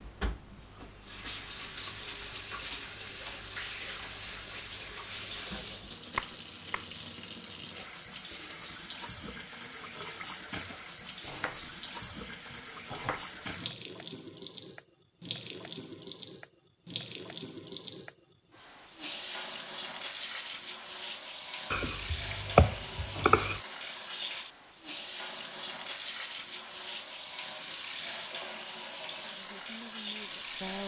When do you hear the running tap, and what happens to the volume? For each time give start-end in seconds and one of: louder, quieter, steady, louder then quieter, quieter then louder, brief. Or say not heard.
0.0-30.8 steady.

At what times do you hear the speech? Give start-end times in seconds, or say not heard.
29.1-30.8.